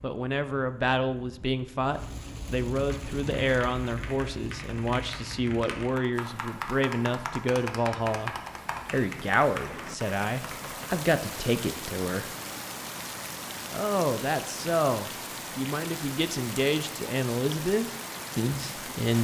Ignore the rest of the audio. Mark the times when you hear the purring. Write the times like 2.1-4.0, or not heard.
not heard.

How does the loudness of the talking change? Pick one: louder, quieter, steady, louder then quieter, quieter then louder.
steady.